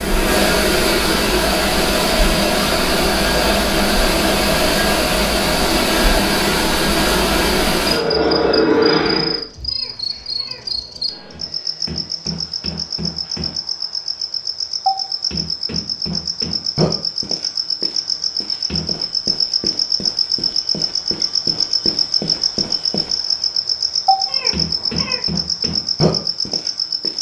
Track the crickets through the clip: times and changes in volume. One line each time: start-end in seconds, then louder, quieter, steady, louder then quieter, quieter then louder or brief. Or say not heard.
0.0-27.1 louder.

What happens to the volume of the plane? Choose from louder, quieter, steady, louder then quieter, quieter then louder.
steady.